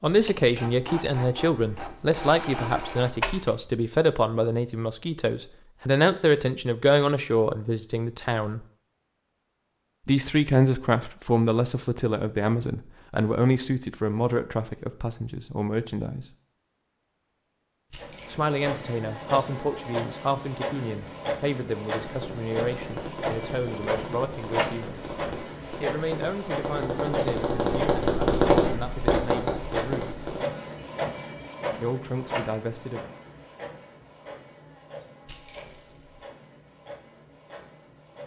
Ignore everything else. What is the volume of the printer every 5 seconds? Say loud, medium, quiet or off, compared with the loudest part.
loud, off, off, loud, loud, loud, loud, quiet.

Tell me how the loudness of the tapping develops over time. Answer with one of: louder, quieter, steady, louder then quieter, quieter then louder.
louder.